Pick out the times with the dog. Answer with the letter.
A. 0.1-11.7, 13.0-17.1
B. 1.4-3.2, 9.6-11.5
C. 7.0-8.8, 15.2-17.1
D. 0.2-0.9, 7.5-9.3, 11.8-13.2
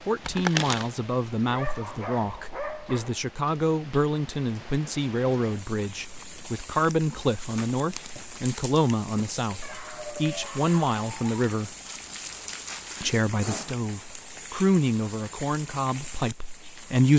B.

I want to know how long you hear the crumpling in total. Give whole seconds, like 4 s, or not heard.
4 s.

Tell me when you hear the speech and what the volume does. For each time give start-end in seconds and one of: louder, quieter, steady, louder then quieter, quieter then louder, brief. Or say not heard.
0.1-11.7 steady
13.0-17.1 louder then quieter.